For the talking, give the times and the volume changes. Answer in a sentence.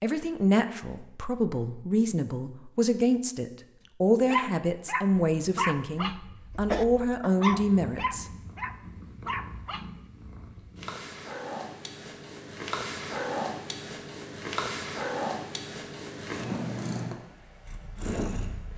The talking can be heard from 0.0 to 8.2 s, at a steady volume.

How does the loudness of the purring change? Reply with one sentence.
The volume of the purring goes up.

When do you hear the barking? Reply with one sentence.
The barking can be heard from 4.2 to 9.8 s.